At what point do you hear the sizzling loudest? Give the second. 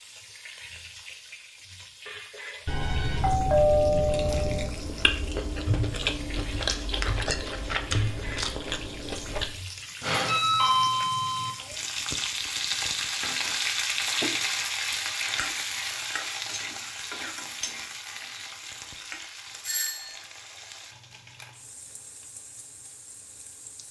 14 s.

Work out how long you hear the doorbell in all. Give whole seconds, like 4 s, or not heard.
4 s.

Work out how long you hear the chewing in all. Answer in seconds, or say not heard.
6 s.